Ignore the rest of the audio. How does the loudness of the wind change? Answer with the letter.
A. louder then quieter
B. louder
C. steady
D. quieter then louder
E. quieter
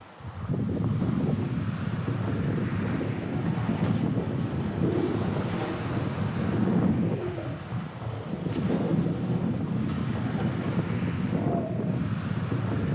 C.